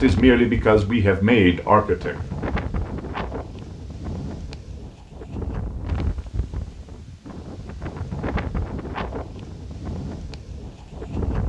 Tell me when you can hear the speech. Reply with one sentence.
You can hear the speech from 0.0 to 2.1 s.